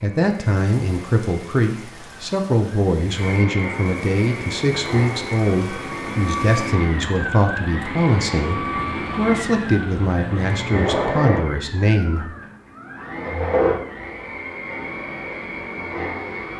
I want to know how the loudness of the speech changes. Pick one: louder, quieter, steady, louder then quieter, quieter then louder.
steady.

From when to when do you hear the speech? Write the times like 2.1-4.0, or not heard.
0.0-12.3.